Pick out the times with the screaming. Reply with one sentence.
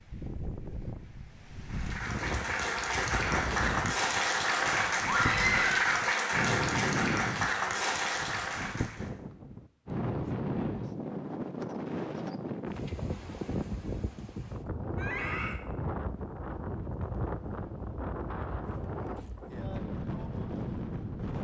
You can hear the screaming from 5.0 to 5.8 s and from 14.9 to 15.6 s.